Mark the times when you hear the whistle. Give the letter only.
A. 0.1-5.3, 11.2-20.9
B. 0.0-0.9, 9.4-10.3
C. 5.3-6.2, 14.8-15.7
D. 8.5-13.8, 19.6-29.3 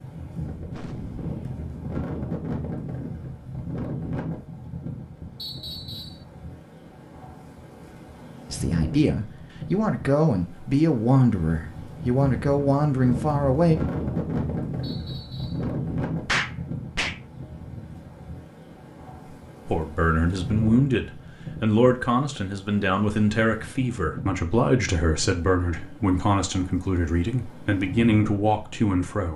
C.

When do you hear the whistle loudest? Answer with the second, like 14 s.
6 s.